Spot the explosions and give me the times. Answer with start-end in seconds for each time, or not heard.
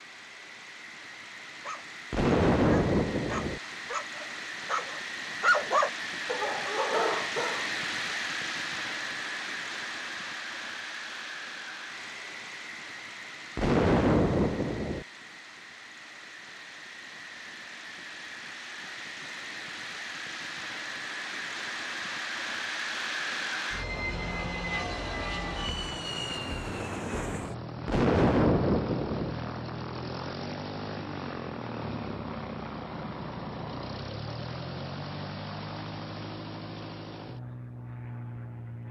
2.1-3.6, 13.6-15.1, 27.9-29.4.